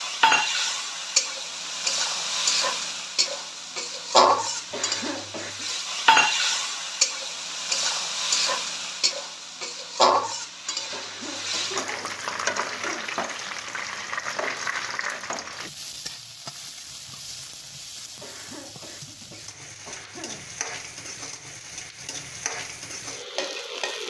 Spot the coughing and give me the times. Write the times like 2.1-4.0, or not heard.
4.7-5.7, 10.9-13.2, 18.2-20.6.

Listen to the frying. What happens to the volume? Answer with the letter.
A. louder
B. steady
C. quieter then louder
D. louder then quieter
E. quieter
E.